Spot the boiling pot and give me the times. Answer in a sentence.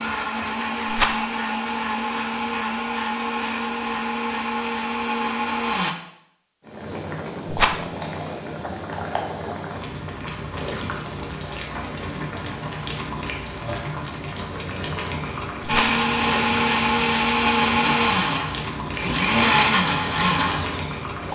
The boiling pot can be heard from 6.6 to 21.2 s.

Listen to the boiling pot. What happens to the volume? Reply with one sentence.
The volume of the boiling pot stays about the same.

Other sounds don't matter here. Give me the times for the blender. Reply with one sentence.
The blender can be heard from 0.0 to 6.0 s and from 15.7 to 21.1 s.